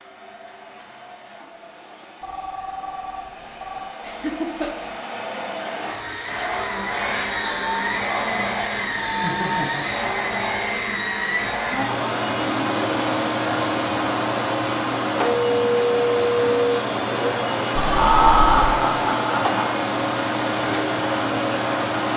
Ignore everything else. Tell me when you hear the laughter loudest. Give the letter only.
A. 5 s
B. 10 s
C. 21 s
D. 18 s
D.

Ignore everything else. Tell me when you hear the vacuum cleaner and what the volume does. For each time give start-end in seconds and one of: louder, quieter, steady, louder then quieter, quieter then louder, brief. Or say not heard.
0.0-22.1 louder.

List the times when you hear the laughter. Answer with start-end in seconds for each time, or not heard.
4.0-4.7, 9.2-9.9, 17.9-19.6.